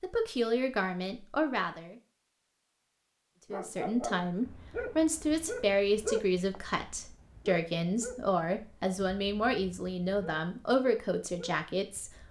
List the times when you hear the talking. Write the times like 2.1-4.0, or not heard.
0.0-1.9, 3.5-12.1.